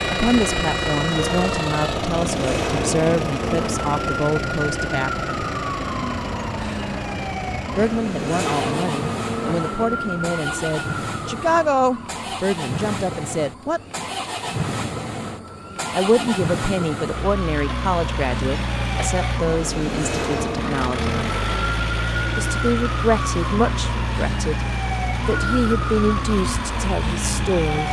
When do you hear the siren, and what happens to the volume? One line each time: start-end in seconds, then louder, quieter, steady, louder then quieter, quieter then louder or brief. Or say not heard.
0.0-27.8 quieter then louder.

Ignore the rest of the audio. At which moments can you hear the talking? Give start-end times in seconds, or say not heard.
0.0-5.3, 7.8-13.8, 15.9-21.1, 22.4-24.6, 25.2-27.8.